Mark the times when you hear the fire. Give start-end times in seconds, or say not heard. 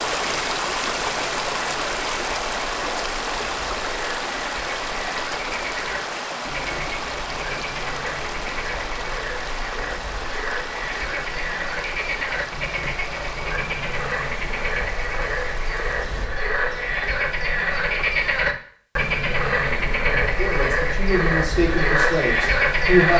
not heard.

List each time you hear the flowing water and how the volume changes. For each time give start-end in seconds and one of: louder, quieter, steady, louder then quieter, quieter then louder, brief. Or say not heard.
0.0-16.3 quieter.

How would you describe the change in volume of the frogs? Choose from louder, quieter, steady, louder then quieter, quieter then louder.
louder.